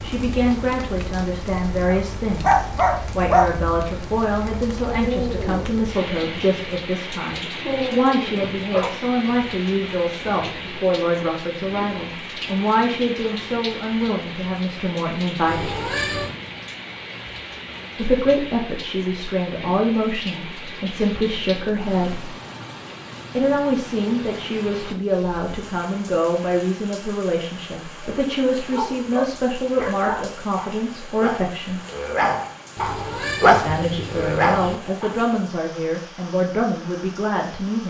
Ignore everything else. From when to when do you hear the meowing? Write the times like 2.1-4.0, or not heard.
15.4-16.3, 32.8-34.8.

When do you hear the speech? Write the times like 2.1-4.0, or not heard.
0.0-15.8, 17.9-22.4, 23.4-31.8, 33.6-37.8.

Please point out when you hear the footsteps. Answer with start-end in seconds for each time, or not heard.
not heard.